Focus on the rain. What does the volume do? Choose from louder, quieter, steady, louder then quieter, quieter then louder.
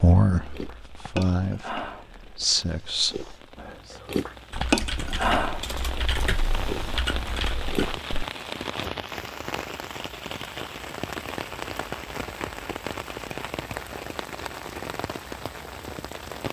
louder.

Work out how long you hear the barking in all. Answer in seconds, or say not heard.
not heard.